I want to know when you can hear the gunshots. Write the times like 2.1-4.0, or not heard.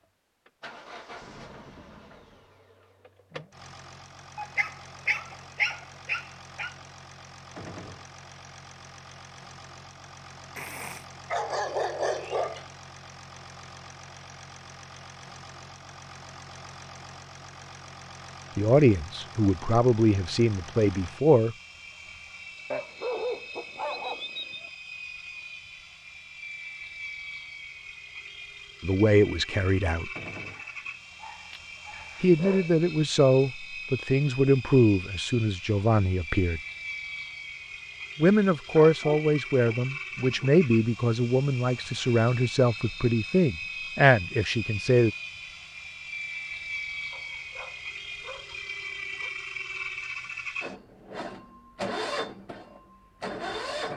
7.5-8.1, 30.1-30.6.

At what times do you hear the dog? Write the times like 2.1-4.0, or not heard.
4.3-6.7, 10.6-12.7, 22.7-24.7, 30.5-32.8, 38.8-40.5, 47.1-49.3.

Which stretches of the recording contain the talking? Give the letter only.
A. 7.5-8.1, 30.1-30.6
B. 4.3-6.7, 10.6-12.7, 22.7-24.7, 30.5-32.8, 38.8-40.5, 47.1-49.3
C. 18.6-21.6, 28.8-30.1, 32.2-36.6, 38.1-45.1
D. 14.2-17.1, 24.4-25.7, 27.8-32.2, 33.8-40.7
C.